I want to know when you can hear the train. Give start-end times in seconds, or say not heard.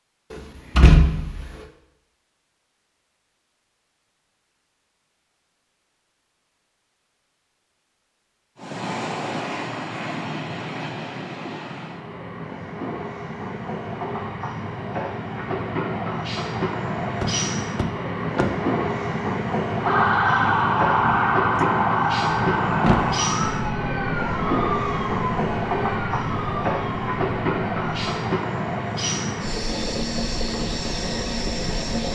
8.6-32.1.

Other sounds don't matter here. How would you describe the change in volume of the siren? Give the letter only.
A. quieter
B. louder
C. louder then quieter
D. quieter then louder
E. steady
A.